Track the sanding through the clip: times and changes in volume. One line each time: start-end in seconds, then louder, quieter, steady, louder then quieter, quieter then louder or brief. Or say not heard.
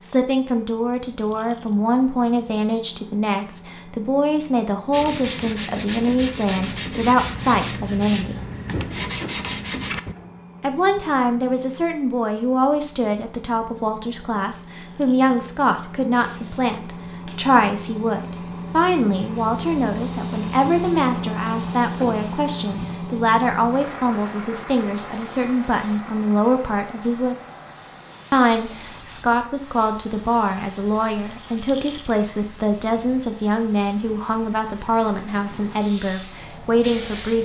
4.9-10.2 steady.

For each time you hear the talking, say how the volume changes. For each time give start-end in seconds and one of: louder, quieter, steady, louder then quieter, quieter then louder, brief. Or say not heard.
0.0-8.4 steady
10.6-27.4 steady
28.3-37.3 steady.